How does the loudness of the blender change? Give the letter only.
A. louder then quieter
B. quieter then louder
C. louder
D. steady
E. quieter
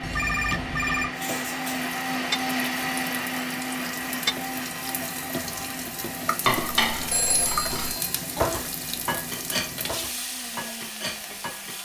E.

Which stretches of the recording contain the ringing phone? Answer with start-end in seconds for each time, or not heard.
0.0-1.1, 7.1-8.2.